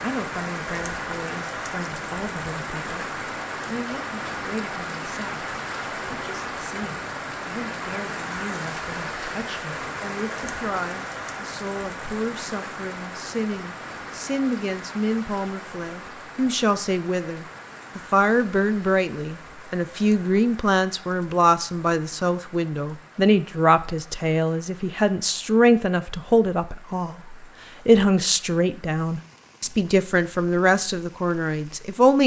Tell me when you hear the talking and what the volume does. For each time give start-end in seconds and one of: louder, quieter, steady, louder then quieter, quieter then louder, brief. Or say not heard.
0.0-32.2 louder.